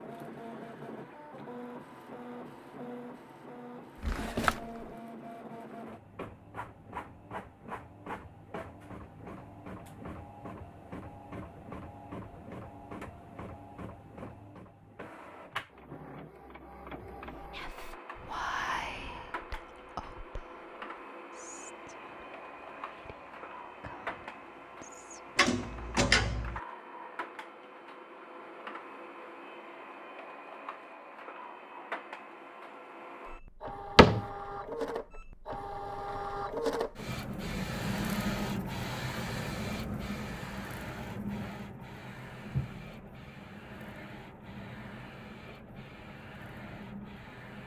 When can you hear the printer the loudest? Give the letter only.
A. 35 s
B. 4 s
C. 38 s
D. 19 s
C.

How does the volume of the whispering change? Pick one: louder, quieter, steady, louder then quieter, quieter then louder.
quieter.